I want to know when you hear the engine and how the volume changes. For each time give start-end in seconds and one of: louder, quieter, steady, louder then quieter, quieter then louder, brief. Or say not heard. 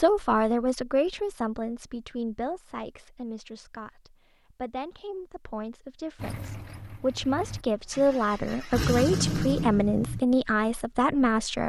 6.2-10.2 louder.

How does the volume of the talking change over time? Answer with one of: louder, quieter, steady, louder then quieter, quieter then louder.
quieter then louder.